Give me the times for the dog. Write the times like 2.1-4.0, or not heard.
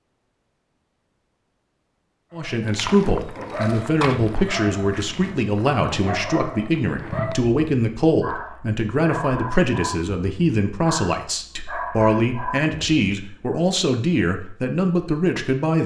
2.4-13.6.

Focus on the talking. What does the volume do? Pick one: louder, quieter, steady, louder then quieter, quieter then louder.
steady.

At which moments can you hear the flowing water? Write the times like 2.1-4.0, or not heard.
not heard.